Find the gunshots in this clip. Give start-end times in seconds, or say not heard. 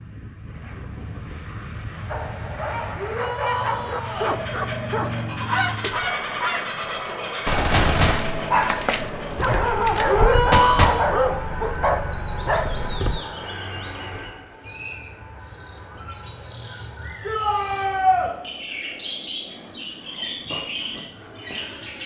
7.5-10.9.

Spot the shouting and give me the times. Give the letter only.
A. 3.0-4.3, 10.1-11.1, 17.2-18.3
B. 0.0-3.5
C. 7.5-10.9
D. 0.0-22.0
A.